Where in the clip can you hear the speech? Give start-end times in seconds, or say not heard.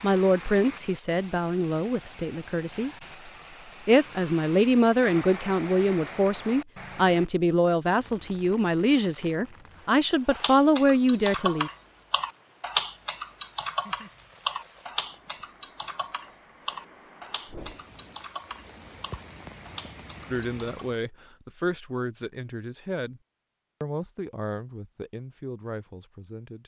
0.0-2.9, 3.9-11.7, 20.3-23.2, 23.8-26.6.